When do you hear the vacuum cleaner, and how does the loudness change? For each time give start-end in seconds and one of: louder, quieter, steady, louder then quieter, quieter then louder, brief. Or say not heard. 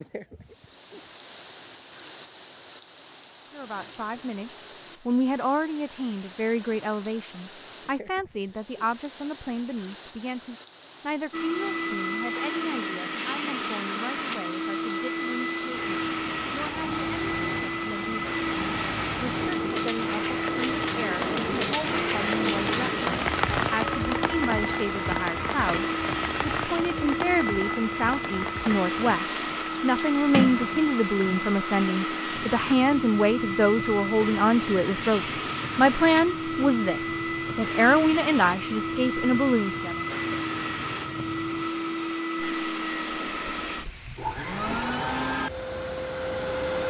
11.3-46.8 steady.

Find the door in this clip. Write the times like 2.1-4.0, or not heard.
30.3-31.5.